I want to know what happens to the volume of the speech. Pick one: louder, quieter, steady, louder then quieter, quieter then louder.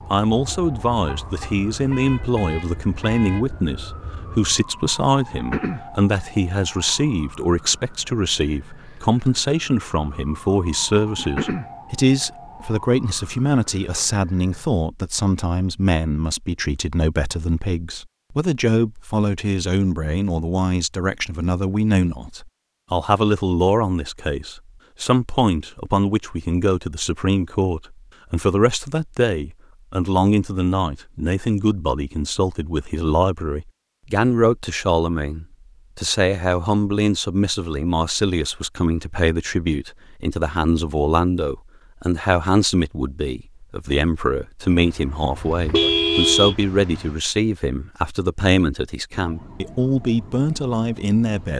steady.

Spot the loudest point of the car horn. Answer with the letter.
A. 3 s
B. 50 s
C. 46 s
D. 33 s
C.